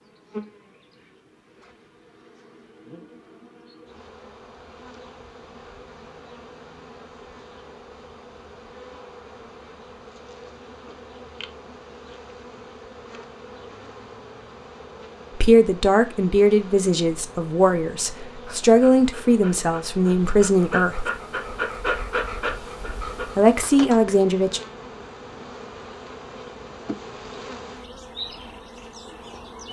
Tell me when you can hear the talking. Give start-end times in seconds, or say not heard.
15.3-21.1, 23.4-24.6.